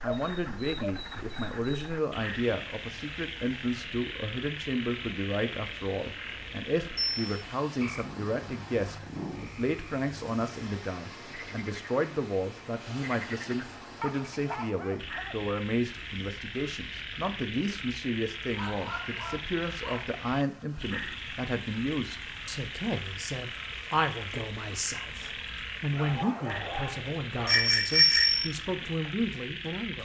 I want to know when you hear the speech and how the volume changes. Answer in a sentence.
You can hear the speech from 0.0 to 30.0 s, at a steady volume.